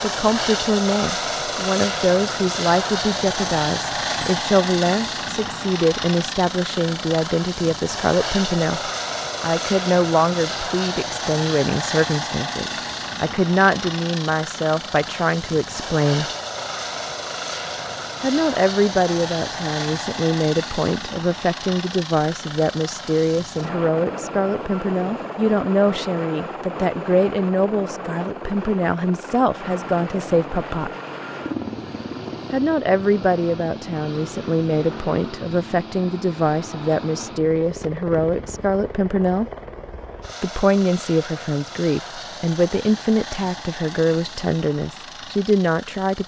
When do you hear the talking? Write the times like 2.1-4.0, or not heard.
0.0-16.2, 18.2-30.9, 32.5-39.5, 40.4-46.2.